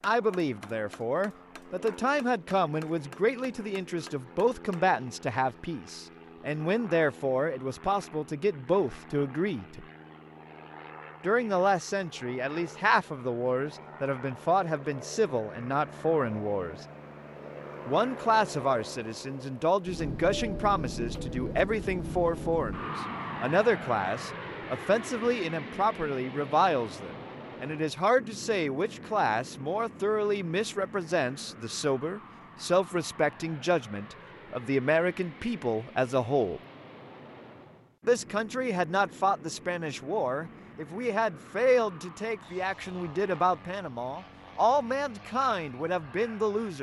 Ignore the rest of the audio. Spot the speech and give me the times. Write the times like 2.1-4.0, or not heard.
0.0-9.8, 11.2-16.9, 17.9-36.6, 38.0-46.7.